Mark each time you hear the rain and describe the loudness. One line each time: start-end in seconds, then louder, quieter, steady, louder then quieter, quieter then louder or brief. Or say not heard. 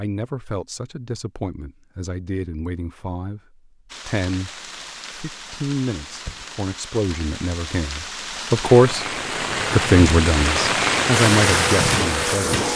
3.9-12.7 louder.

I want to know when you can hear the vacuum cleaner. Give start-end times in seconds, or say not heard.
11.1-12.7.